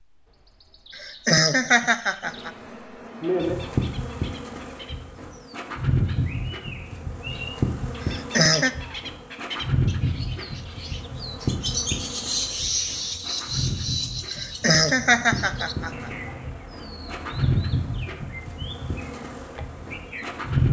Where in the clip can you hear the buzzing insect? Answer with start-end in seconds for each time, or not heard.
2.2-20.6.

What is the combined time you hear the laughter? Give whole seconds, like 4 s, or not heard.
4 s.